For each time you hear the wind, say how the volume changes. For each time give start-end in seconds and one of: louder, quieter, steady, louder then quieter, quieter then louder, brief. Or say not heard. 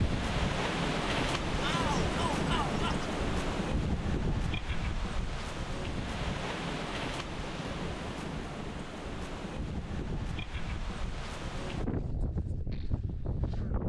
0.0-13.8 quieter.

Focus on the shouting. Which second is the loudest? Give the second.
2 s.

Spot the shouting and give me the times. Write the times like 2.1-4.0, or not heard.
1.6-3.1.